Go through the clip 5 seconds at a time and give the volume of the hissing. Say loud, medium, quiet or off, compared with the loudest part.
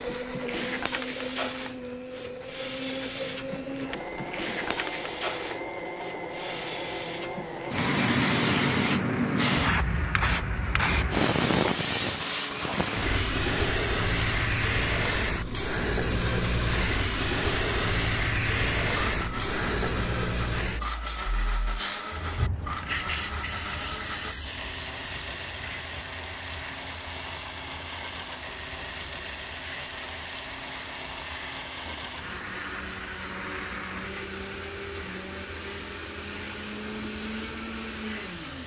medium, loud, loud, loud, medium, quiet, quiet, quiet.